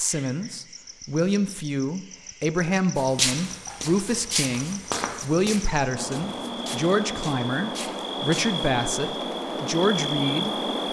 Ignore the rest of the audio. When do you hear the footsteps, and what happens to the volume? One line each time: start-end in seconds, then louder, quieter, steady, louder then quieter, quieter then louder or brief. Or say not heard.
3.0-8.7 louder then quieter.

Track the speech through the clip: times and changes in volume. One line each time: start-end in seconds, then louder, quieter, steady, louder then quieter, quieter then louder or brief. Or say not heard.
0.0-10.6 steady.